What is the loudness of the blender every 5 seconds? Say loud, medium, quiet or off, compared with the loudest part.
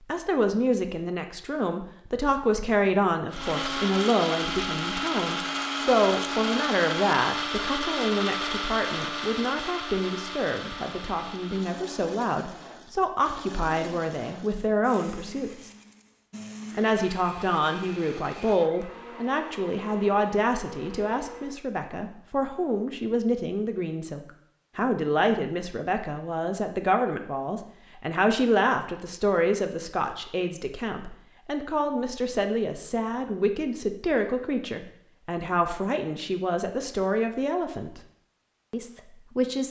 loud, loud, medium, quiet, quiet, off, off, off.